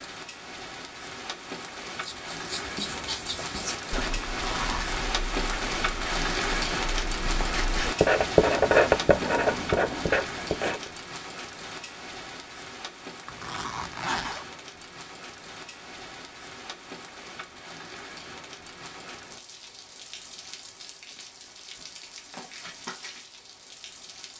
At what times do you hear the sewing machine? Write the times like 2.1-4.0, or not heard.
not heard.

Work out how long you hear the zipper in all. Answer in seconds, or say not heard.
2 s.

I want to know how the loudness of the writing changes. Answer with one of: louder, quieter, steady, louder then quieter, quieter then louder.
louder.